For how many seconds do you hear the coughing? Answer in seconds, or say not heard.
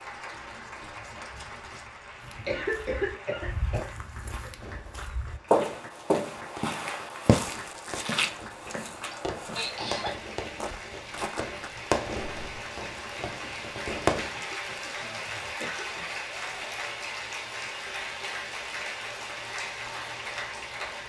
5 s.